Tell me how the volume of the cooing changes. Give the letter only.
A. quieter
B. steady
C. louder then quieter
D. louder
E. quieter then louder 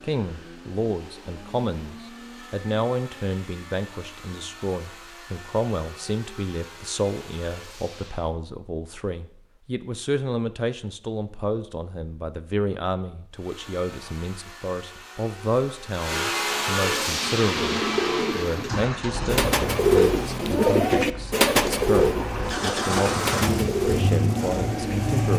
C.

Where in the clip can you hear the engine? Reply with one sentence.
You can hear the engine from 0.0 to 8.3 s and from 13.3 to 25.3 s.